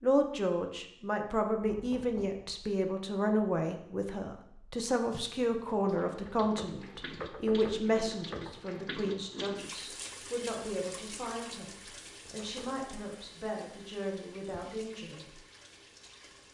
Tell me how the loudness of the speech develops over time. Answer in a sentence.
The loudness of the speech goes down.